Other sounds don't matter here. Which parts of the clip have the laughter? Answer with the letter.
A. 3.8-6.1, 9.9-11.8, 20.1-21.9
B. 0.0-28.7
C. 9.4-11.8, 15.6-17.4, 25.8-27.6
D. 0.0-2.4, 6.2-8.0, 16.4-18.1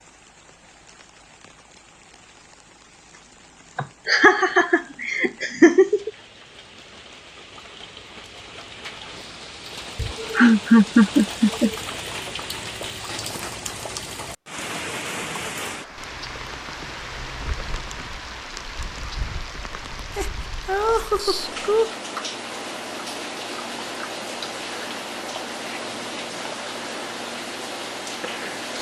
A.